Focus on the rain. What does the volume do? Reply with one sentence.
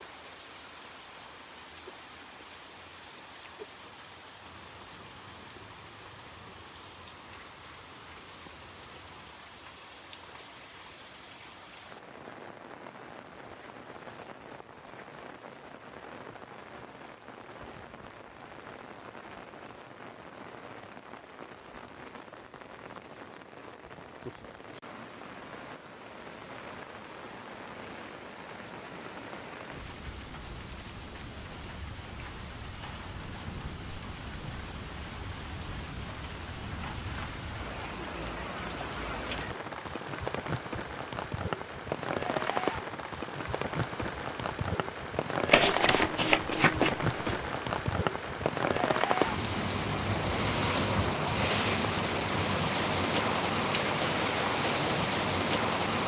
The volume of the rain goes up.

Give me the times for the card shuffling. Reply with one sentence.
You can hear the card shuffling from 45.5 to 47.4 s.